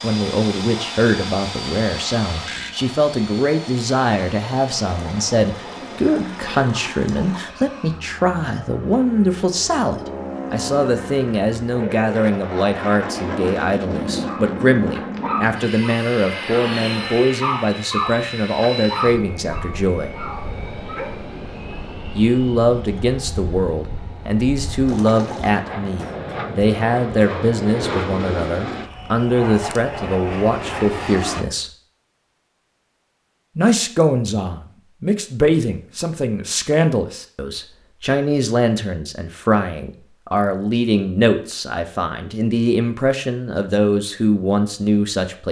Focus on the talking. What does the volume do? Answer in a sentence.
The volume of the talking stays about the same.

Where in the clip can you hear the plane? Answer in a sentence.
The plane can be heard from 0.0 to 31.4 s.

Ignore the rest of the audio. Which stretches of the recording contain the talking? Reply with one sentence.
The talking can be heard from 0.0 to 20.1 s, from 22.1 to 31.7 s and from 33.5 to 45.4 s.